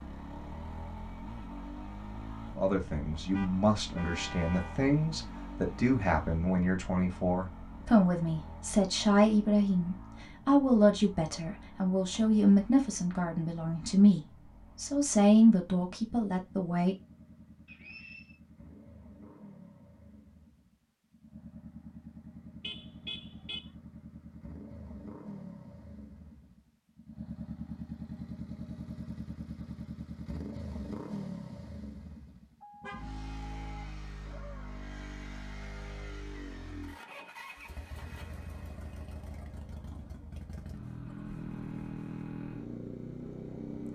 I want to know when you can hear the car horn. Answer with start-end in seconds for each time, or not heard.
3.3-4.8, 22.6-23.7, 32.6-33.8.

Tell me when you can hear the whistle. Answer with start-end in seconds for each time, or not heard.
17.6-18.4.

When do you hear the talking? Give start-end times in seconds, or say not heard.
2.5-16.9.